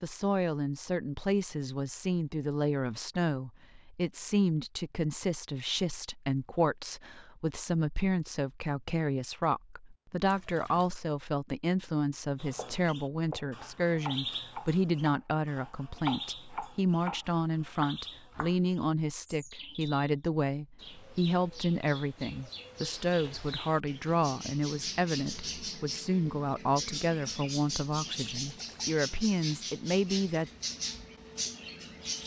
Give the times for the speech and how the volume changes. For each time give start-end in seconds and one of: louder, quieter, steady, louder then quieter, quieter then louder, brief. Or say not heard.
0.0-30.5 steady.